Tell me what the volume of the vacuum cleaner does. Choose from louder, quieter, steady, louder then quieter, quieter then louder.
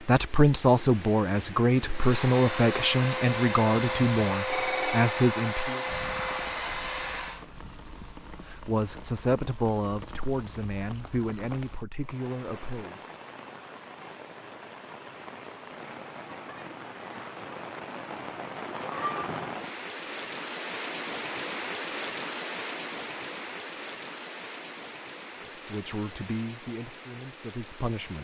steady.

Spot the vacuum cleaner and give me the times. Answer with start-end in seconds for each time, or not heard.
1.9-7.5.